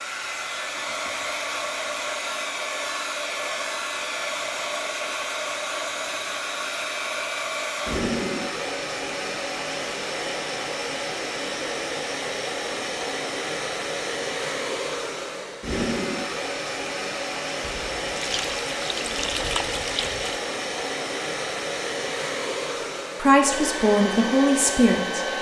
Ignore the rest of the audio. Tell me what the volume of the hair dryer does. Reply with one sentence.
The loudness of the hair dryer stays about the same.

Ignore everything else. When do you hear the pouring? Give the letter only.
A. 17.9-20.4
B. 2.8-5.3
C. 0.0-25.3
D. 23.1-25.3
A.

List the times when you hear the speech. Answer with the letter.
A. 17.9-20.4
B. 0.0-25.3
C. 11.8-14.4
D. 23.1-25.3
D.